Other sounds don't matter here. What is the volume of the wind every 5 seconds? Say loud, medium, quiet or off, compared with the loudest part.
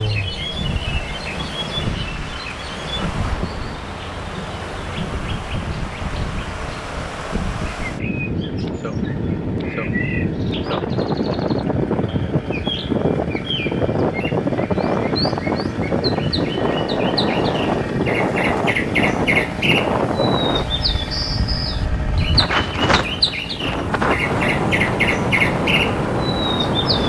medium, medium, loud, loud, loud, loud.